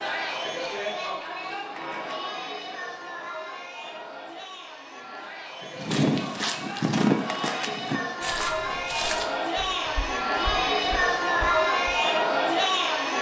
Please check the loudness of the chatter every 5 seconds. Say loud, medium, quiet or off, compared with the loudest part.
medium, medium, loud.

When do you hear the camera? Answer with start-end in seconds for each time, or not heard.
1.8-2.2, 7.2-7.7.